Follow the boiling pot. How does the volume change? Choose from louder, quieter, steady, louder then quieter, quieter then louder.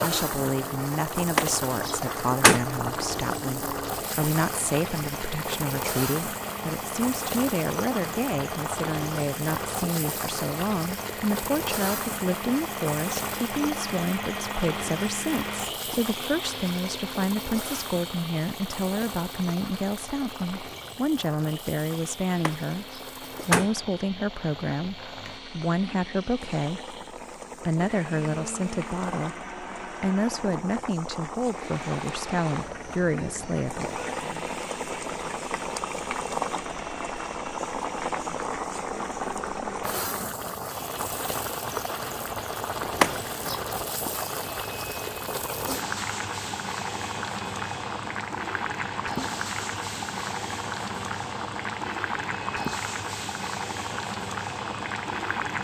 quieter then louder.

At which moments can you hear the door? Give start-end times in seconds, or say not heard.
1.4-2.6, 22.4-23.7, 43.0-43.5.